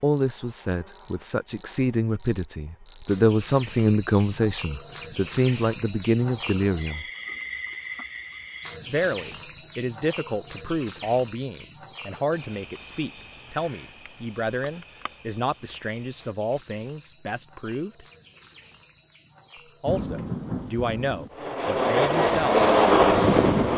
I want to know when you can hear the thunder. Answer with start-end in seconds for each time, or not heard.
19.9-21.3.